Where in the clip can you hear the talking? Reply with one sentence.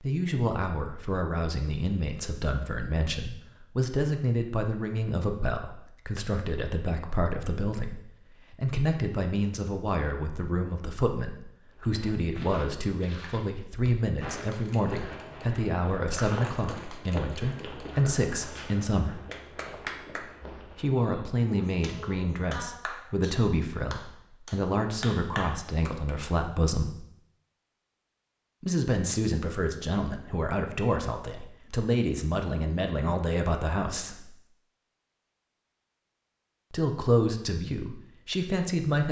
The talking can be heard from 0.0 to 19.2 s, from 20.8 to 27.0 s, from 28.6 to 34.3 s and from 36.7 to 39.0 s.